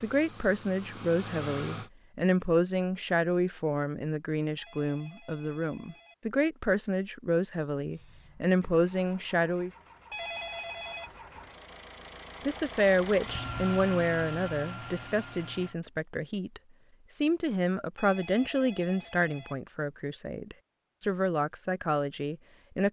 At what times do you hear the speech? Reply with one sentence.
You can hear the speech from 0.0 to 9.7 s and from 12.4 to 22.8 s.